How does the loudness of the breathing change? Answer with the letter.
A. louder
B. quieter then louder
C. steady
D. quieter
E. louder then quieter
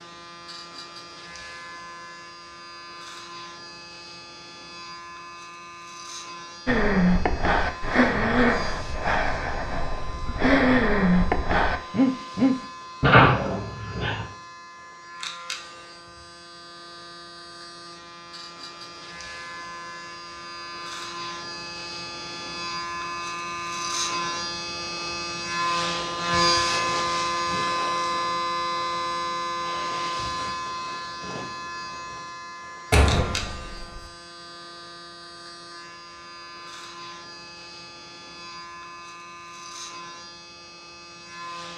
B.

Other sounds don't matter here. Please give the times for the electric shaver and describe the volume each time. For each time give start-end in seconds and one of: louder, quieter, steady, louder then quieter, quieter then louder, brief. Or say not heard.
0.0-41.7 louder then quieter.